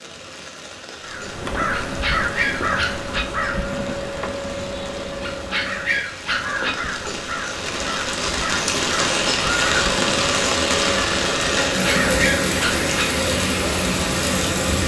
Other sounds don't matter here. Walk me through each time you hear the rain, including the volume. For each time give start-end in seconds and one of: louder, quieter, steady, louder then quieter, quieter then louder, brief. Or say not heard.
0.0-14.8 louder.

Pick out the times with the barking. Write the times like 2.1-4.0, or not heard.
1.8-3.2, 5.2-6.8, 11.7-13.1.